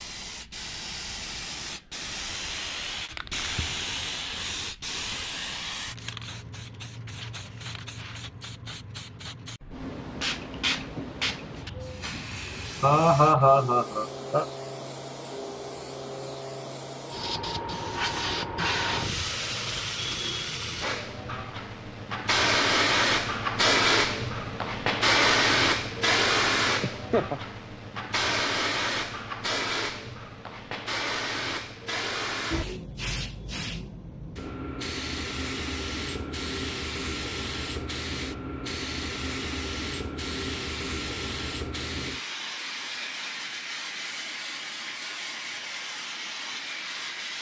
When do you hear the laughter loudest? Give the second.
13 s.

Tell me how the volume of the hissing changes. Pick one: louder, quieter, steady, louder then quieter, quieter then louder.
louder then quieter.